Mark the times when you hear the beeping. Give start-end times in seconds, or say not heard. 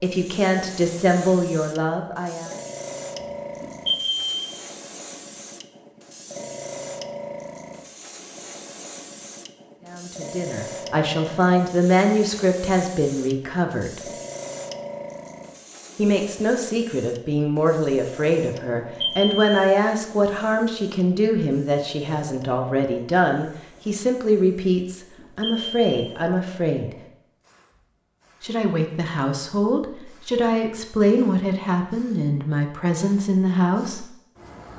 3.6-4.5, 18.8-19.6, 25.1-25.9.